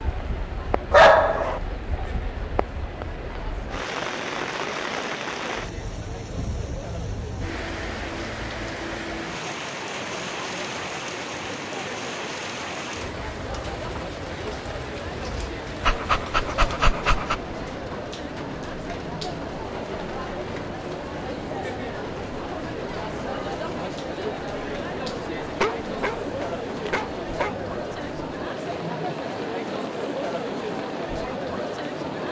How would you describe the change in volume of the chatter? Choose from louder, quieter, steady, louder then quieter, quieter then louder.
louder.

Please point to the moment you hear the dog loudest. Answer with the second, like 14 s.
1 s.